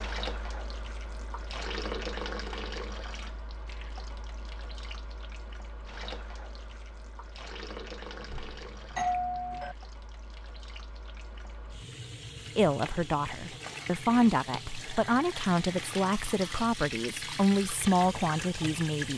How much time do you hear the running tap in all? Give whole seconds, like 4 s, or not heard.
19 s.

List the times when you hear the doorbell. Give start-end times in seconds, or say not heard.
8.2-9.8.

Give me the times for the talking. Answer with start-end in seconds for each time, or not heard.
12.6-19.1.